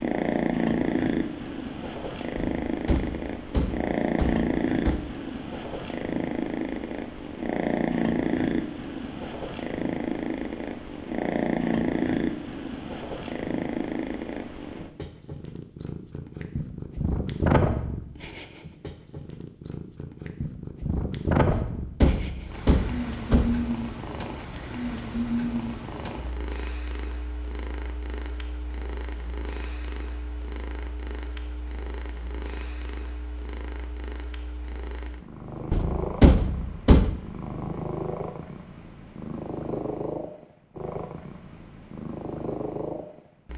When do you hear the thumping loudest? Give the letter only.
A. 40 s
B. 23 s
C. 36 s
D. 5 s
C.